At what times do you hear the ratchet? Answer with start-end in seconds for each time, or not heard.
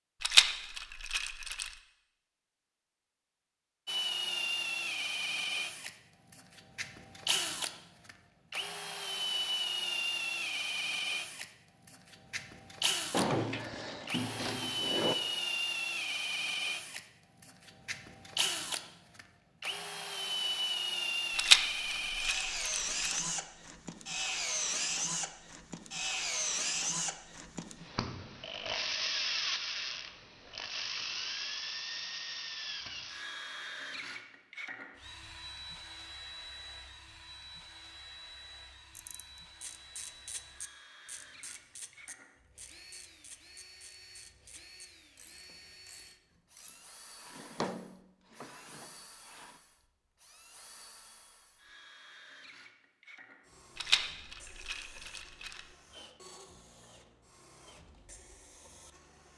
39.0-46.9.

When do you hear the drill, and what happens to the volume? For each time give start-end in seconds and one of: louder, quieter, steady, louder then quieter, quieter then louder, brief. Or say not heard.
3.9-59.3 quieter.